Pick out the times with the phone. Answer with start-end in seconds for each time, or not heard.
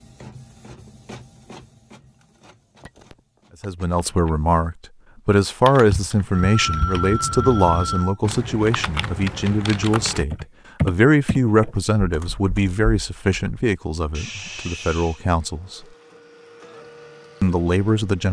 2.8-4.3, 6.3-8.2, 14.1-15.2.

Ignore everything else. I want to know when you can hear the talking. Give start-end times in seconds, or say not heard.
3.6-15.8, 17.4-18.2.